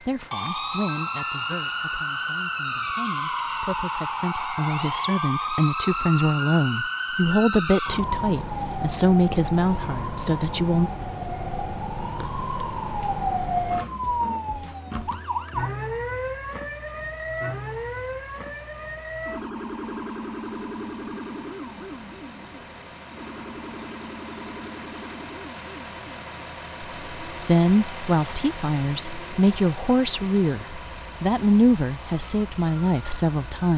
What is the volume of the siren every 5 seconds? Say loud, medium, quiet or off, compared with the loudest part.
loud, loud, loud, loud, medium, quiet, quiet.